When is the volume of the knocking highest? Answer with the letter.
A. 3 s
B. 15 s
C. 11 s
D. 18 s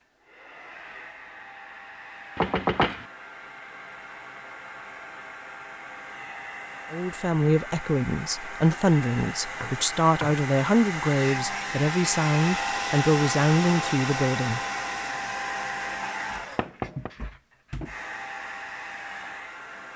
A.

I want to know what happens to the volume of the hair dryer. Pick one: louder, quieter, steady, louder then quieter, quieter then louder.
louder then quieter.